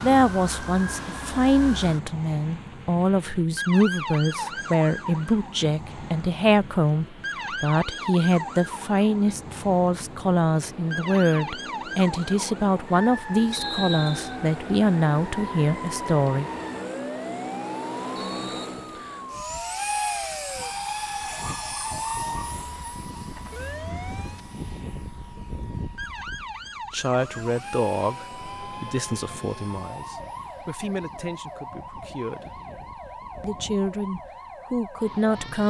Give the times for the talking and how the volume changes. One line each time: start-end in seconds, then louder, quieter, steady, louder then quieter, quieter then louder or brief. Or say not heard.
0.0-16.4 steady
26.9-32.5 quieter
33.4-35.6 brief.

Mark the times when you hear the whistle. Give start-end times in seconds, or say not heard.
13.5-14.3, 18.1-19.3.